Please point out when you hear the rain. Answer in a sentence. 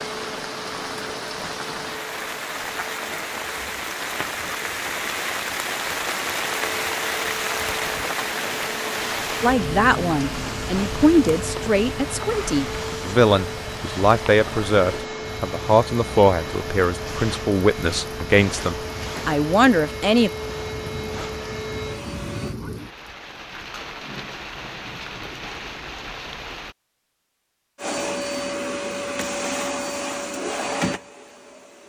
The rain can be heard from 0.0 to 26.8 s.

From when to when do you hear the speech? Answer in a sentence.
You can hear the speech from 9.4 to 20.3 s.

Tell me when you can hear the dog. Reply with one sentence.
You can't hear the dog here.